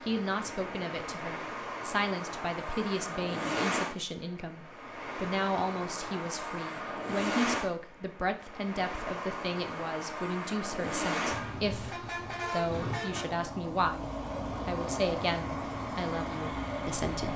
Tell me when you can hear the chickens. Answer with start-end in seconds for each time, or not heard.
not heard.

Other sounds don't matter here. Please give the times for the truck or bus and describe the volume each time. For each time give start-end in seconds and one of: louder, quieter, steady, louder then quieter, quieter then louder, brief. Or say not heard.
0.0-17.3 steady.